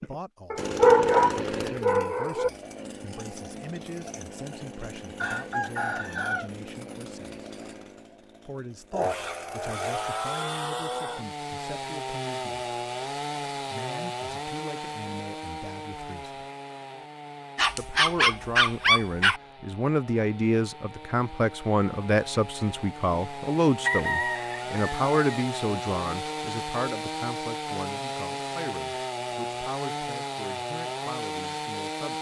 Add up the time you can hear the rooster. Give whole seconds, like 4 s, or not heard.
3 s.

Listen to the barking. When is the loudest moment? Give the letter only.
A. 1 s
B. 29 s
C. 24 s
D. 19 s
A.